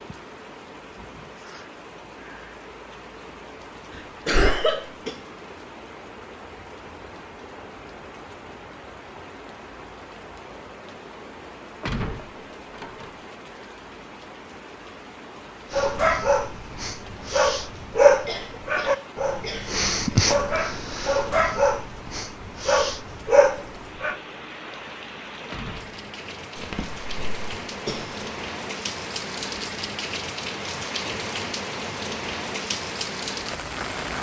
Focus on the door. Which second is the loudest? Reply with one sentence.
The loudest moment of the door is at 12 seconds.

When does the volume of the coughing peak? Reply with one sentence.
The volume of the coughing peaks at 5 seconds.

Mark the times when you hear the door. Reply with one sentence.
The door can be heard from 11.8 to 13.2 s and from 25.5 to 25.9 s.